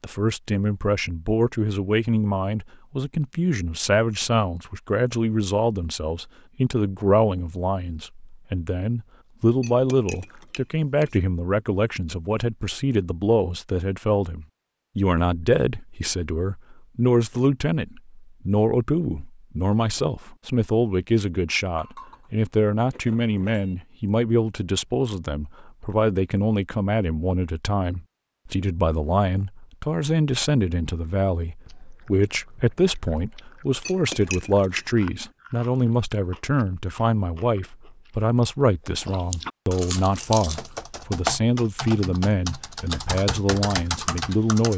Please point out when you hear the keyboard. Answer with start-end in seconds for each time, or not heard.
40.0-44.7.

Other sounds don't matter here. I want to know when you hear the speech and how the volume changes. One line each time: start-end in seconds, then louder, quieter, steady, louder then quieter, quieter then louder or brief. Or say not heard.
0.0-44.7 steady.